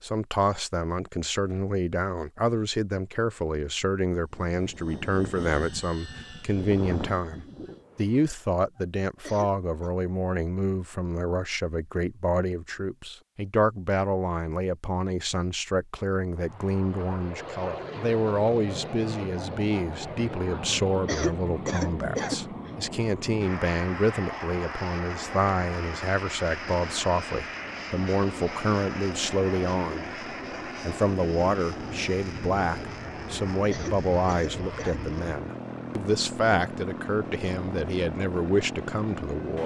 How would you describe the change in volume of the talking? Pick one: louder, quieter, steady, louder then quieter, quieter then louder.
steady.